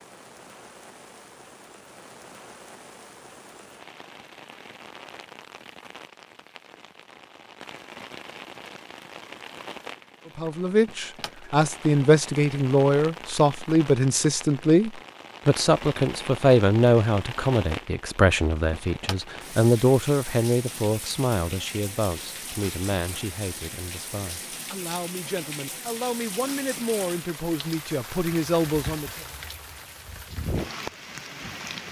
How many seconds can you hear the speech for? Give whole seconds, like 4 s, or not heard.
19 s.